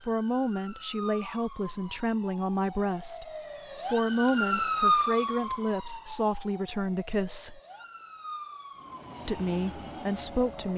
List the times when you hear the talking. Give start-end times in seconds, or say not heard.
0.1-7.6, 9.2-10.7.